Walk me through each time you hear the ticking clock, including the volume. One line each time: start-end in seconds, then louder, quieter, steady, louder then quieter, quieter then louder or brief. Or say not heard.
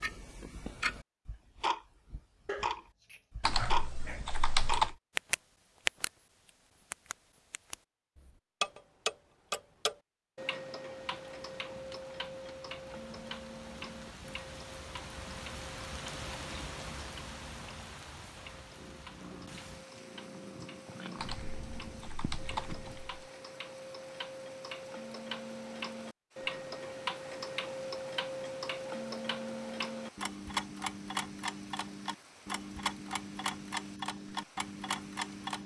0.0-35.6 quieter then louder.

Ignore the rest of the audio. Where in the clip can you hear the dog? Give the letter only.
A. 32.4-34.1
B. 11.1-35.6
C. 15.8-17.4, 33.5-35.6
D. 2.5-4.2
D.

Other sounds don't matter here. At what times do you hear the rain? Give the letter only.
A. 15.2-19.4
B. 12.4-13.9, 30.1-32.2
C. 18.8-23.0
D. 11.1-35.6
D.